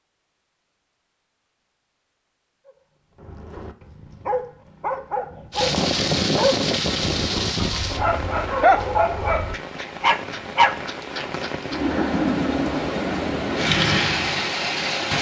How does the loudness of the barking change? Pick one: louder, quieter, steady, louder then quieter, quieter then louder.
louder.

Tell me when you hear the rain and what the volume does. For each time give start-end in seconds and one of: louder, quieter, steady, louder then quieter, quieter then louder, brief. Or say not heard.
5.5-15.1 quieter then louder.